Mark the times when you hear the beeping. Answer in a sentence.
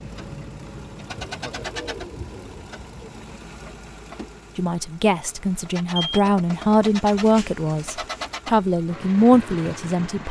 The beeping can be heard from 6.0 to 6.7 s.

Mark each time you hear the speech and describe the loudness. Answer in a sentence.
The speech can be heard from 4.5 to 10.2 s, getting louder.